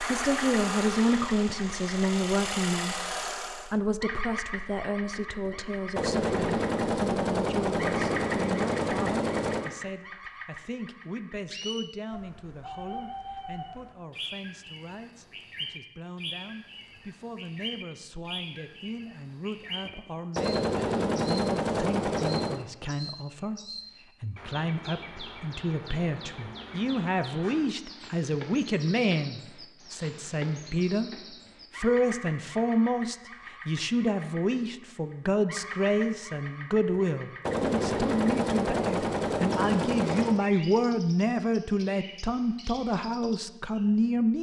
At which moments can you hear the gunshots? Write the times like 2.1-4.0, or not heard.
5.5-9.7, 19.9-22.6, 36.9-40.4.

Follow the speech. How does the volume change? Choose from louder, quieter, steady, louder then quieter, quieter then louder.
quieter then louder.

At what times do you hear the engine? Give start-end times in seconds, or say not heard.
0.0-3.8.